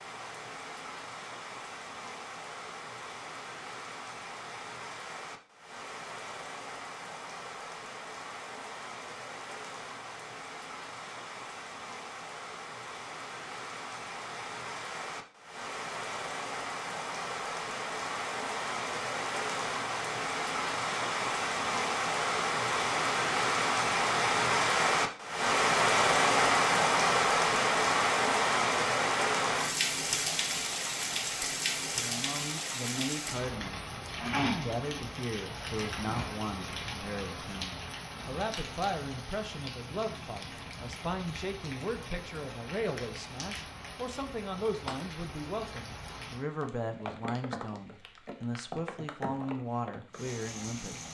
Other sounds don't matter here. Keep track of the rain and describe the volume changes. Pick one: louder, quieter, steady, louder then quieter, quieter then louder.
louder then quieter.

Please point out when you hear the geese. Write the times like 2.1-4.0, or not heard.
not heard.